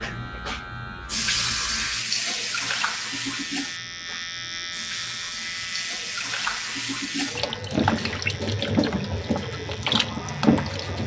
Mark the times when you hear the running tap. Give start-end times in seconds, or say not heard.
0.0-11.0.